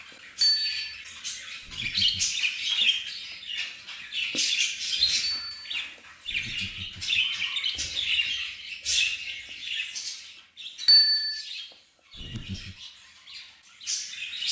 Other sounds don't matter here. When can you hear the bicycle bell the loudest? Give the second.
11 s.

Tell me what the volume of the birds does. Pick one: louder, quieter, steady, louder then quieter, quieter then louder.
quieter.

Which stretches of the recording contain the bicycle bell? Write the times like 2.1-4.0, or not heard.
0.4-0.9, 5.2-5.8, 10.8-11.4.